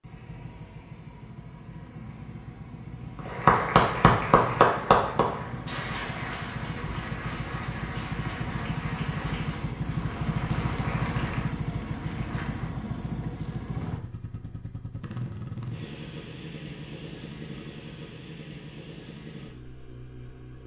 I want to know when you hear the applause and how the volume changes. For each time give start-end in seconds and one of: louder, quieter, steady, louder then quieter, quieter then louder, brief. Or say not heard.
3.1-12.7 quieter.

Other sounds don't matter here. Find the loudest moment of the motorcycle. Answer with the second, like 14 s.
11 s.